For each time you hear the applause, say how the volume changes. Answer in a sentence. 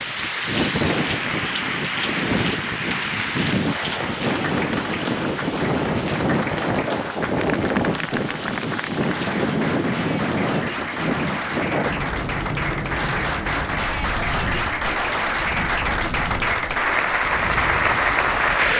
The applause can be heard from 0.0 to 18.7 s, getting louder.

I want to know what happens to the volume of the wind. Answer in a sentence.
The loudness of the wind goes down.